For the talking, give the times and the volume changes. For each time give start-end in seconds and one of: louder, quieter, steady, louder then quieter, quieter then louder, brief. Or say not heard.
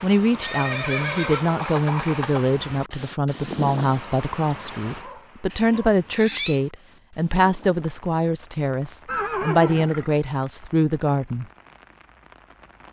0.0-11.4 steady.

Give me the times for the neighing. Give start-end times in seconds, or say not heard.
0.4-2.5, 5.5-6.6, 9.1-10.1.